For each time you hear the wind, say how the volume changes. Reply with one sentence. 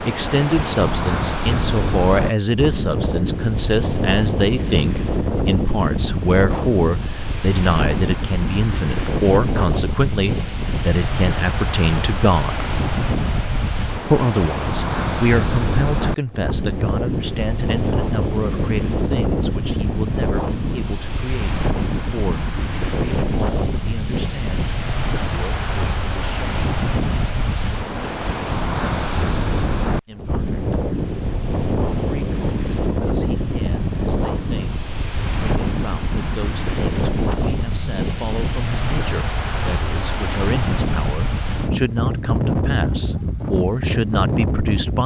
The wind can be heard from 0.0 to 45.0 s, at a steady volume.